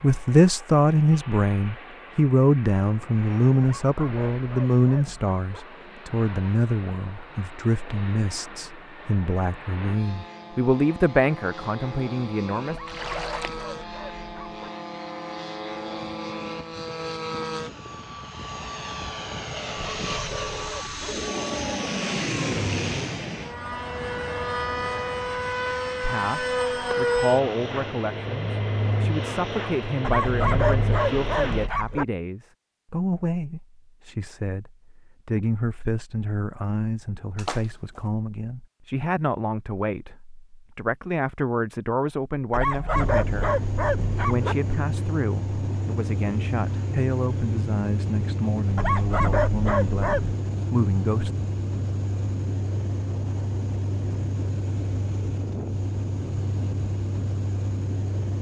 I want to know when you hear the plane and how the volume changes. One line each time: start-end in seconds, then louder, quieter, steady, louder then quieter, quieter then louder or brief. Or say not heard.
0.0-31.7 louder
42.9-58.3 steady.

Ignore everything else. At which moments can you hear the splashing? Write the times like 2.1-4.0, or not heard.
12.8-13.7, 37.4-38.1.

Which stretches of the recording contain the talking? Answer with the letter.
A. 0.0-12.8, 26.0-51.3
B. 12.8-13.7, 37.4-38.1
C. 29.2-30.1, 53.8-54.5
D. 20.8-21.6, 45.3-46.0
A.